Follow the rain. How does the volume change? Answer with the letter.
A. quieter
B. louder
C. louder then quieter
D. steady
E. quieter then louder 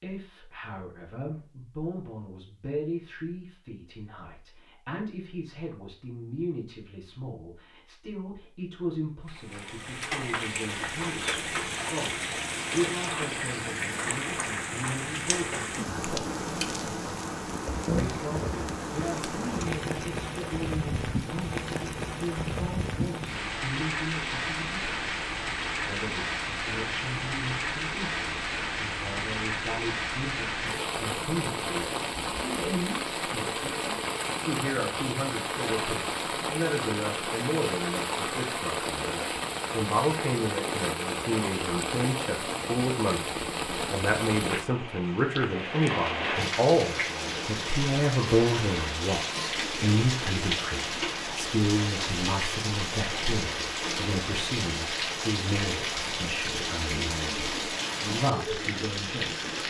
D.